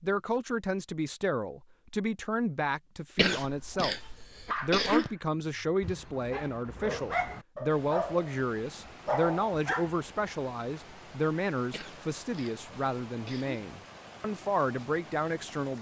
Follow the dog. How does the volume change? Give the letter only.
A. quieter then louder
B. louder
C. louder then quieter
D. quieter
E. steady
A.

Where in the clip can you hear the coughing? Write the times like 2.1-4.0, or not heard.
3.1-5.1, 11.7-13.6.